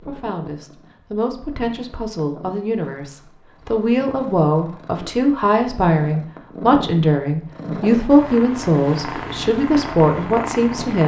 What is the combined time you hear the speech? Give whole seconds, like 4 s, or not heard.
11 s.